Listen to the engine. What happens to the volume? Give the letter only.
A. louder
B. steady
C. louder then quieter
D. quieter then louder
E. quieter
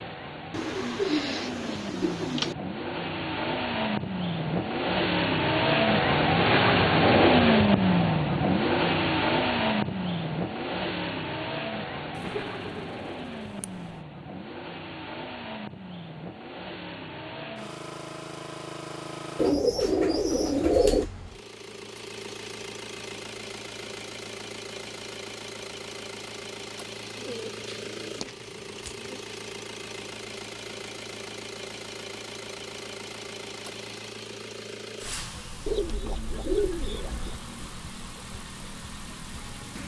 E.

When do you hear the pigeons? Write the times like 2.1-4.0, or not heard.
0.5-2.5, 12.2-14.0, 19.4-21.1, 27.1-29.2, 35.6-37.4.